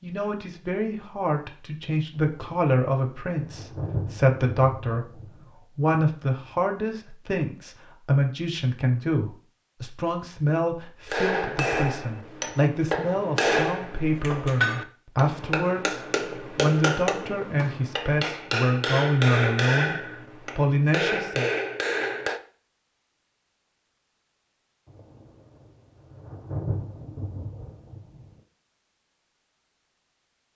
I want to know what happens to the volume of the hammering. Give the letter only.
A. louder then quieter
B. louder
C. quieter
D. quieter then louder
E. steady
E.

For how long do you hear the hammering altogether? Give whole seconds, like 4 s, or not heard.
11 s.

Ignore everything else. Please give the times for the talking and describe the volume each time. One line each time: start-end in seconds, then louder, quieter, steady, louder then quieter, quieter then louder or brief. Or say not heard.
0.0-21.5 steady.